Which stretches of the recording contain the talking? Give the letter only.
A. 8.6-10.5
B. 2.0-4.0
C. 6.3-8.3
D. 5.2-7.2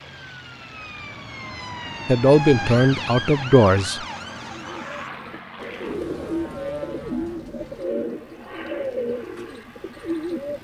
B.